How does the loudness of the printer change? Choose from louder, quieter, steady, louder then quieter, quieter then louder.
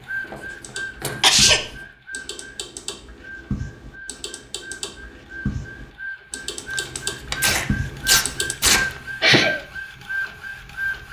quieter then louder.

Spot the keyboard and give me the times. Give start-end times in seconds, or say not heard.
0.5-8.6.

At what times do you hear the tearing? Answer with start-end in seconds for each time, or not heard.
0.3-1.5, 6.7-8.8.